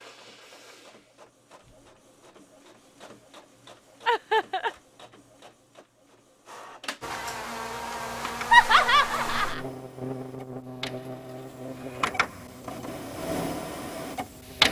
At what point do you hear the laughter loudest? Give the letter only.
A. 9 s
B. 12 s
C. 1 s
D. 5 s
A.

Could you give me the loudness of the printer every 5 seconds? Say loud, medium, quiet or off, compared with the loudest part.
quiet, quiet, loud.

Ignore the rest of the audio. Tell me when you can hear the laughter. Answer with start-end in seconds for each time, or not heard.
4.0-4.7, 8.5-9.7.